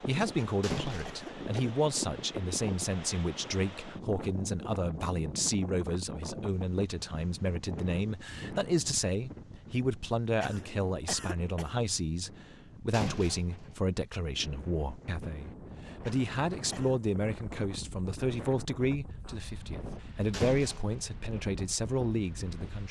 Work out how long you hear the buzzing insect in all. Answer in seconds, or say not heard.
not heard.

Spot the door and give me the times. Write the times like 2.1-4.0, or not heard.
0.6-1.2, 12.9-13.8, 20.3-21.1.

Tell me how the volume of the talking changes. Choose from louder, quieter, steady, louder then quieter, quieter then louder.
steady.